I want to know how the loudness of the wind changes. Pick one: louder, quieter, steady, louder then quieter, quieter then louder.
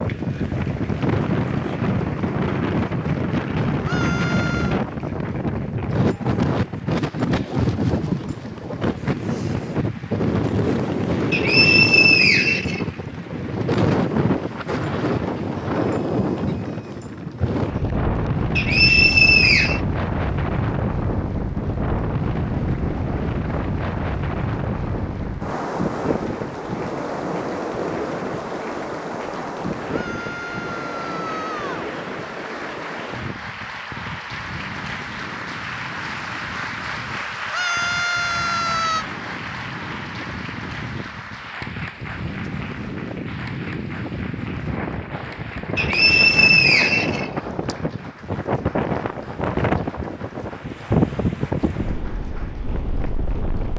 quieter then louder.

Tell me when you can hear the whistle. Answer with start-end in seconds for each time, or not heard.
11.3-12.8, 18.6-19.8, 45.8-47.8.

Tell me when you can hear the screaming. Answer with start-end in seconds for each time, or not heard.
3.9-4.8, 29.9-31.9, 37.5-39.0.